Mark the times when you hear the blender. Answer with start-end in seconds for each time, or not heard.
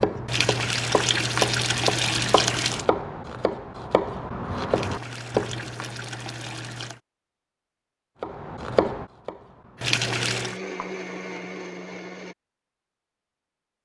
9.8-12.3.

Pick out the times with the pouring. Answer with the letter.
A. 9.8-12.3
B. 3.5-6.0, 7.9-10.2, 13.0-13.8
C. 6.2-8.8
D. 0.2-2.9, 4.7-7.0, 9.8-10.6
D.